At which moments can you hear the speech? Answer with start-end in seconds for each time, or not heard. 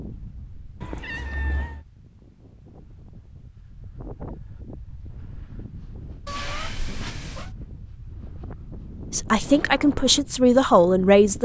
9.1-11.4.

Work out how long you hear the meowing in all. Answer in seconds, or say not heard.
2 s.